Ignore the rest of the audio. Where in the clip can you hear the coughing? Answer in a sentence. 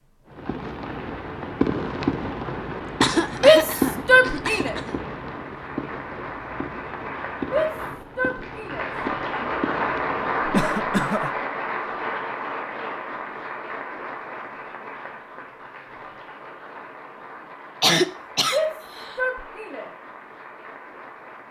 You can hear the coughing from 3.0 to 5.0 s, from 10.4 to 11.3 s and from 17.8 to 19.1 s.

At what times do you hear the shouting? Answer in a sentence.
The shouting can be heard from 3.4 to 4.8 s, from 7.4 to 9.5 s and from 18.5 to 19.9 s.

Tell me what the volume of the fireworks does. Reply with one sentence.
The loudness of the fireworks goes down.